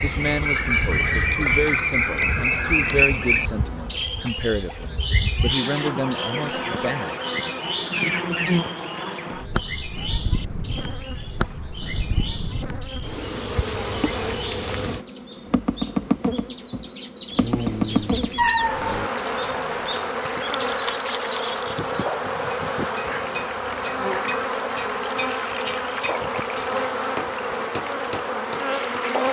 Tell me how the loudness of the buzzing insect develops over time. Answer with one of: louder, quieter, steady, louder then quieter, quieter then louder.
louder.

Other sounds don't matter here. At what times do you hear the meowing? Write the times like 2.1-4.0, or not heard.
17.4-19.1.